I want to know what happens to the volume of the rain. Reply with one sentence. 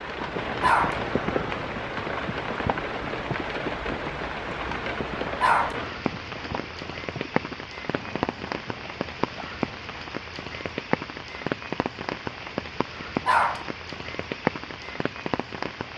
The loudness of the rain stays about the same.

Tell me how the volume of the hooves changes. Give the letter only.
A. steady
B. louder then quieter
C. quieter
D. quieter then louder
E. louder
C.